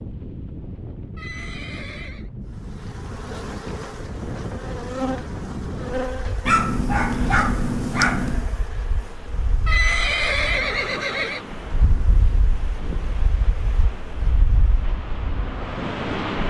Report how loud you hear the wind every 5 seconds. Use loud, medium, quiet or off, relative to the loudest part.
medium, medium, medium, loud.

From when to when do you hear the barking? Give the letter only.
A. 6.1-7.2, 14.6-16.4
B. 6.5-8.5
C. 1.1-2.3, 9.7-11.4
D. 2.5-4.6
B.